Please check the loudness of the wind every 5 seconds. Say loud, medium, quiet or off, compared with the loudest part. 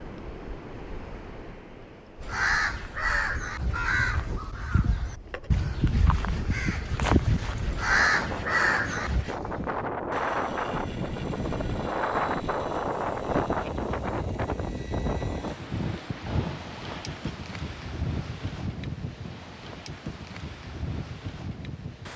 quiet, medium, loud, medium, medium.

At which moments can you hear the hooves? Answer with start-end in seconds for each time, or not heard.
not heard.